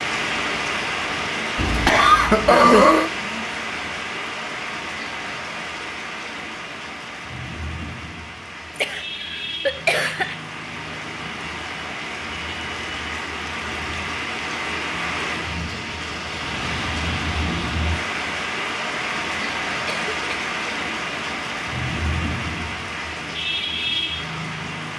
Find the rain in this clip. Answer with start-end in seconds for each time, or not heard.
0.0-24.9.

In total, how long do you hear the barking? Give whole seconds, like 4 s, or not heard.
not heard.